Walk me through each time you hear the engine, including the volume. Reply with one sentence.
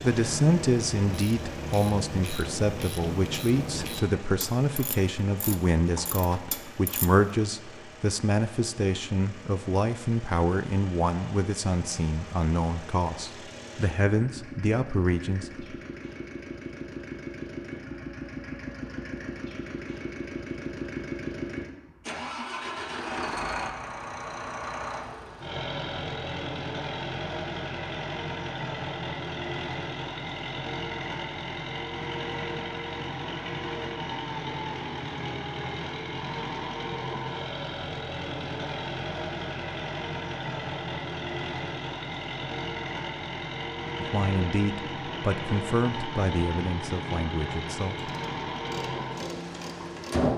The engine can be heard from 0.0 to 50.3 s, getting louder.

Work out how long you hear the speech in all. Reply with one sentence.
You can hear the speech for 20 seconds altogether.